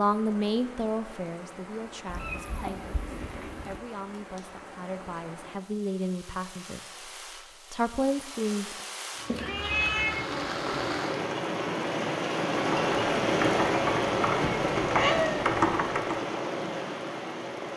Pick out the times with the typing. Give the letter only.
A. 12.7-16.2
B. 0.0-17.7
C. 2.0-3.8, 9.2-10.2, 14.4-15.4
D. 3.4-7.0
A.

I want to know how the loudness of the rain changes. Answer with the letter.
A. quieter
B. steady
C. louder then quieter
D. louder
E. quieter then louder
D.